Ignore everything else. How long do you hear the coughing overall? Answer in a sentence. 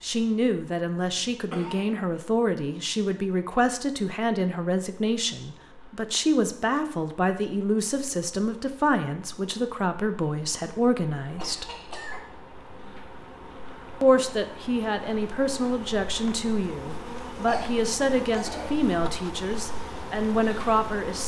You can hear the coughing for 3 seconds altogether.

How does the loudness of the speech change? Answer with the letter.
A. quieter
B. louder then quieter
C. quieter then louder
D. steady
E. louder
D.